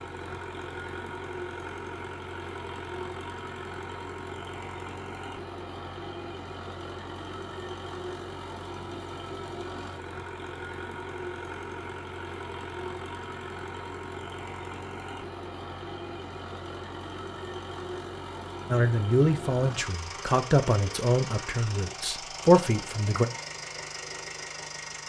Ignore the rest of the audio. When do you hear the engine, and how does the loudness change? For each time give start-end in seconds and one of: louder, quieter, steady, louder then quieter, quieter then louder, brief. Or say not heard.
0.0-25.0 steady.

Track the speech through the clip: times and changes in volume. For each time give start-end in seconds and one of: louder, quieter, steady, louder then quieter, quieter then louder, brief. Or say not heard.
18.7-23.2 quieter then louder.